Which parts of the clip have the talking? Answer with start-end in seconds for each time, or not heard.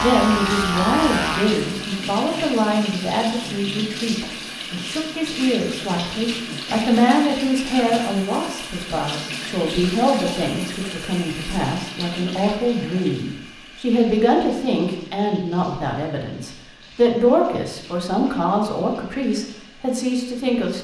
0.0-20.7.